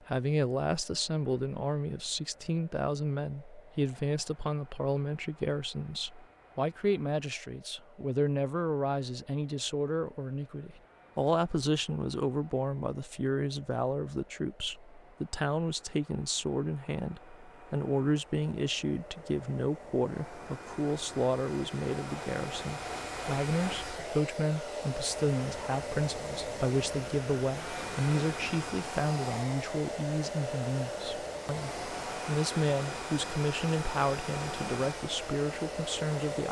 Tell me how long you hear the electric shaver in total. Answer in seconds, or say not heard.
not heard.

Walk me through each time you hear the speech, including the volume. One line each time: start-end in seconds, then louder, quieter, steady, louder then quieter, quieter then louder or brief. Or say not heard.
0.1-36.4 steady.